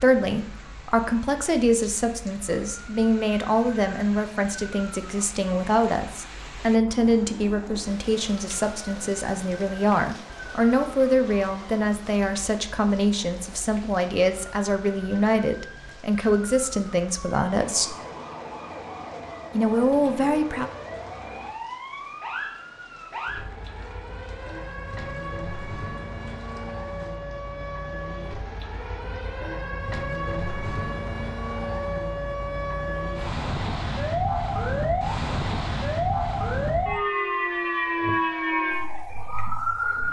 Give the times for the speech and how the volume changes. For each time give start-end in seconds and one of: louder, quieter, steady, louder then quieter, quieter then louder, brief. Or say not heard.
0.0-17.9 steady
19.5-20.6 brief.